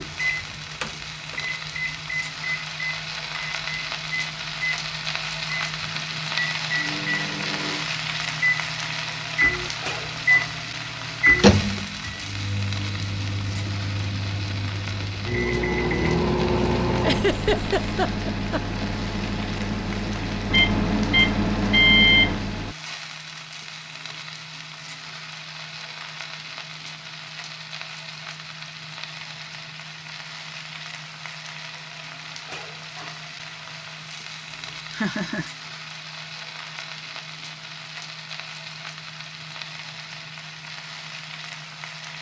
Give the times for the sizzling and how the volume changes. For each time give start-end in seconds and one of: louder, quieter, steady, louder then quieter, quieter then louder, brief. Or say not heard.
0.0-42.1 quieter.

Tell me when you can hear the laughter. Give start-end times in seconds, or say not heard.
17.0-18.9, 34.9-35.5.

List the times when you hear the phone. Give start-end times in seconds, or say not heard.
not heard.